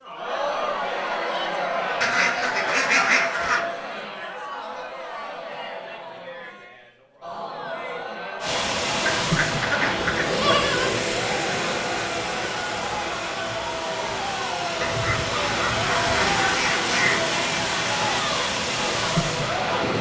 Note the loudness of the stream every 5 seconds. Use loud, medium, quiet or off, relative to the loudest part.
off, loud, loud, loud.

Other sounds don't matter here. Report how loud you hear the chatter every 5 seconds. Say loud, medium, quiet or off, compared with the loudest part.
loud, medium, loud, loud.